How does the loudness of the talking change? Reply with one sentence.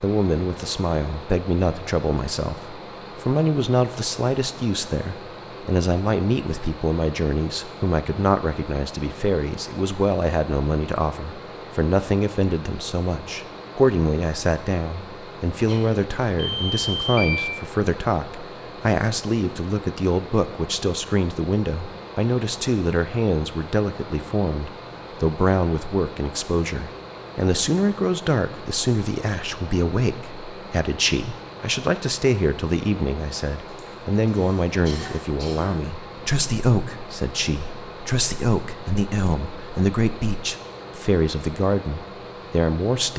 The volume of the talking stays about the same.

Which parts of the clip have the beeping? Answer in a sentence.
The beeping can be heard from 16.4 to 17.4 s.